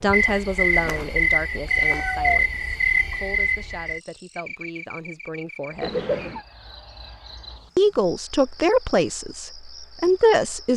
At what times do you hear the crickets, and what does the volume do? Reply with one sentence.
You can hear the crickets from 0.0 to 10.7 s, getting quieter.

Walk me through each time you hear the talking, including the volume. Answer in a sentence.
The talking can be heard from 0.0 to 6.0 s, getting quieter; and briefly from 7.8 to 10.7 s.